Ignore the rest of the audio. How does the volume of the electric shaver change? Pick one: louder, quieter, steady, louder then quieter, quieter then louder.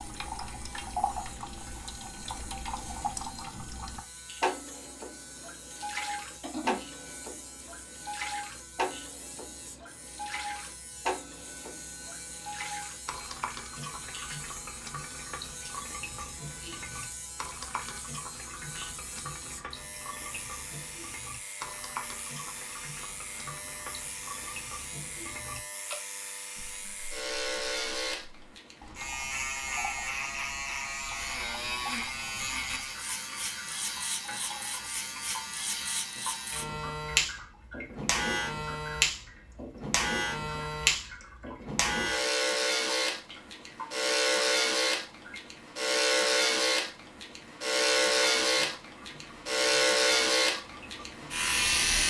louder.